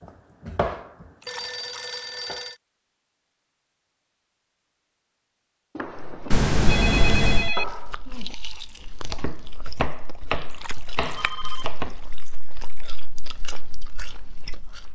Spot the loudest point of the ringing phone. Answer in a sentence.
The loudest moment of the ringing phone is at 7 seconds.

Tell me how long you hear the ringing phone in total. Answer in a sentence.
You can hear the ringing phone for 4 seconds altogether.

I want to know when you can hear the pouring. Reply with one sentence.
The pouring can be heard from 1.2 to 2.3 s, from 6.3 to 7.5 s and from 10.5 to 12.9 s.